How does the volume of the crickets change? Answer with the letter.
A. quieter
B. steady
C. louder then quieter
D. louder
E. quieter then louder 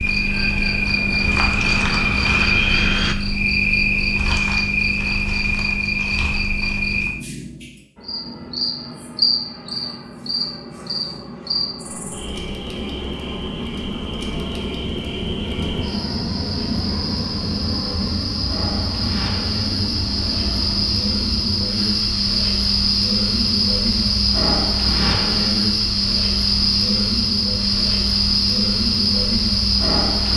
E.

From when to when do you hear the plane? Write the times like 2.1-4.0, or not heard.
0.1-3.1, 8.0-21.7.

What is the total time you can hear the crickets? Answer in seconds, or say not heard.
30 s.